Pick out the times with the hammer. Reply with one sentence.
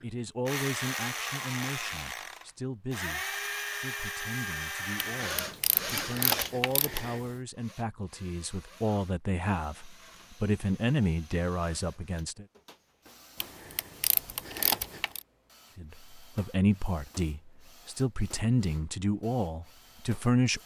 You can't hear the hammer here.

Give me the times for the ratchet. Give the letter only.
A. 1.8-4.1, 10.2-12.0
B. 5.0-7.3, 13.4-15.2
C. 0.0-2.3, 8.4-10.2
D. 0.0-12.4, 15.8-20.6
B.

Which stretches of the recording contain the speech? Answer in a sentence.
You can hear the speech from 0.0 to 12.4 s and from 15.8 to 20.6 s.